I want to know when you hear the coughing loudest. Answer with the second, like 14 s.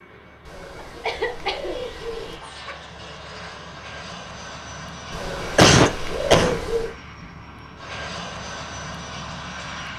6 s.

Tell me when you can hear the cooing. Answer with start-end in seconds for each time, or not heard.
0.5-2.4, 5.1-7.0.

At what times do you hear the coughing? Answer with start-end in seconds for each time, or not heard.
1.0-2.8, 5.5-6.6.